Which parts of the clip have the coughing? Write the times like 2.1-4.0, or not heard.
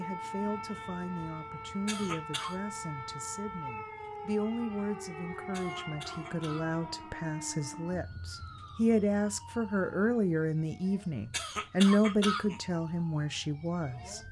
1.9-2.5, 5.5-6.8, 11.3-12.6.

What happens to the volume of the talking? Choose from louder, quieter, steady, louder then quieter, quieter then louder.
louder.